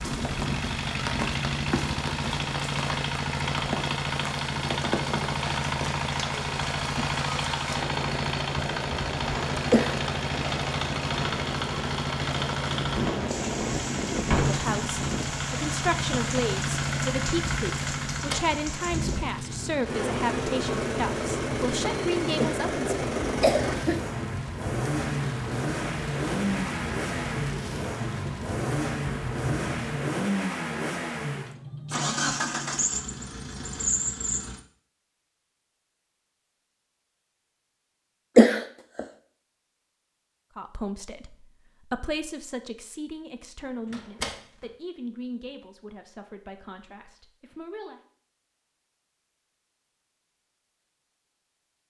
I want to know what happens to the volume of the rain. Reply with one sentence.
The loudness of the rain stays about the same.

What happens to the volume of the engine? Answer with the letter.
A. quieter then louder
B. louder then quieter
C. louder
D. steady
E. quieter
D.